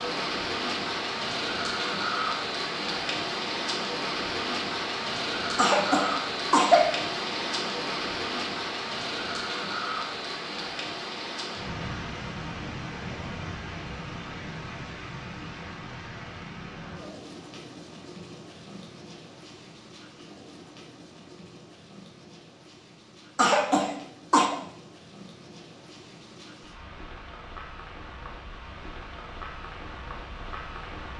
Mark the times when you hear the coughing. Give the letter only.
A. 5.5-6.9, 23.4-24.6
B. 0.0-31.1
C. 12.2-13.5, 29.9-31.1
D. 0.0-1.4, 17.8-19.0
A.